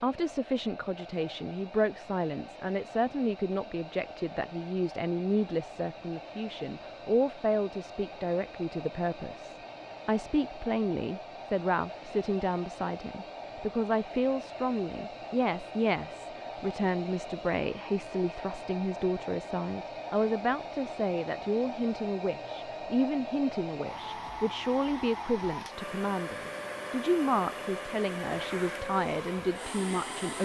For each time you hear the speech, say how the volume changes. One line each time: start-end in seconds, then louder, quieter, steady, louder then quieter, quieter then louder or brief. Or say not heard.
0.0-30.3 steady.